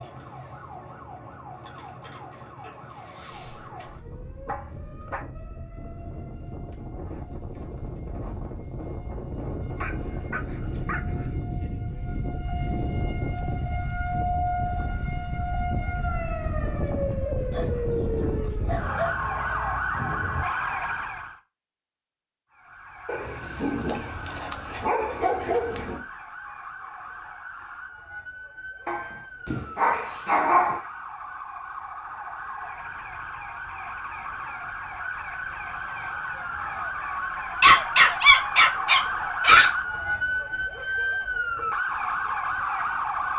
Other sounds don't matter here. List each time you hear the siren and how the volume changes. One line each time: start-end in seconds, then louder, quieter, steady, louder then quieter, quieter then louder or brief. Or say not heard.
0.0-21.4 louder
22.5-43.3 louder.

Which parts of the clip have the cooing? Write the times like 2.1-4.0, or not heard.
not heard.